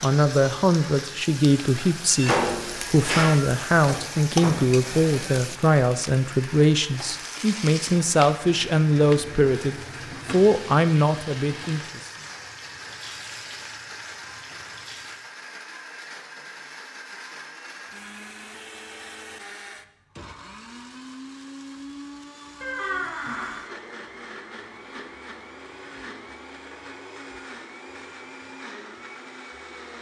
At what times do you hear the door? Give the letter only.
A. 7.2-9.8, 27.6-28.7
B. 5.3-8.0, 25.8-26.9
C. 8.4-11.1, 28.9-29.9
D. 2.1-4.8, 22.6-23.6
D.